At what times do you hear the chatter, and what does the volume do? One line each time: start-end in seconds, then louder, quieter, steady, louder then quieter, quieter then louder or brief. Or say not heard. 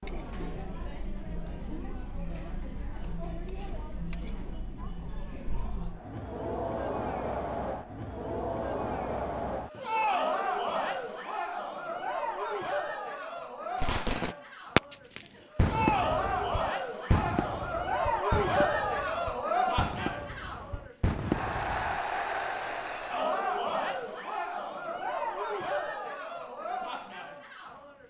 0.0-28.0 louder.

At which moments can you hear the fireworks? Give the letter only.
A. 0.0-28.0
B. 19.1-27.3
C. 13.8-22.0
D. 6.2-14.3
C.